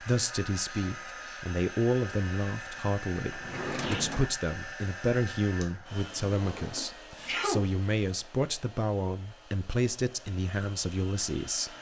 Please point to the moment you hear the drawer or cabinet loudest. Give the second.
4 s.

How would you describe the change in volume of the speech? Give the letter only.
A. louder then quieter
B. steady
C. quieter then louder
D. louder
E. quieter
B.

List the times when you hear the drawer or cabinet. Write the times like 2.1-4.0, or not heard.
3.3-4.3, 6.3-7.0.